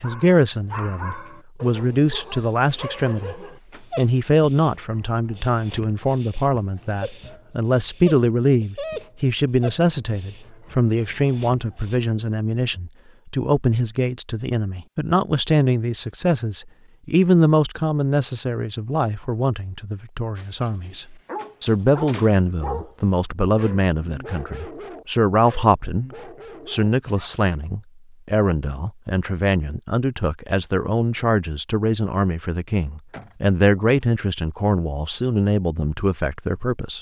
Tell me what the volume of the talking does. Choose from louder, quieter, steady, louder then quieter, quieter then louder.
steady.